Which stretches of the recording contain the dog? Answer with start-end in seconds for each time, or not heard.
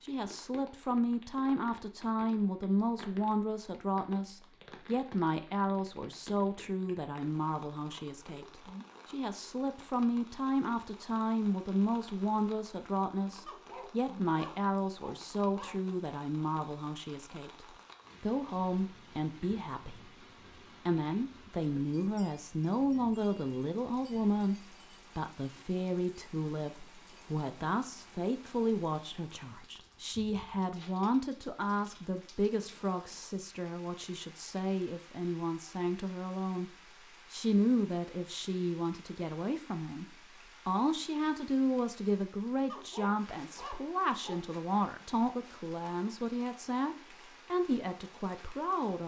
13.4-15.8, 42.6-44.4.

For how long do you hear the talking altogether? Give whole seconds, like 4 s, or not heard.
48 s.